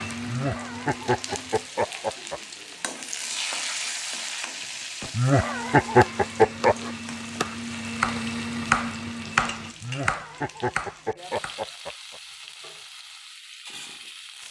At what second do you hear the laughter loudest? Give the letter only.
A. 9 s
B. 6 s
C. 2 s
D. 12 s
B.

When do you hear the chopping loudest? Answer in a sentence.
The volume of the chopping peaks at 9 seconds.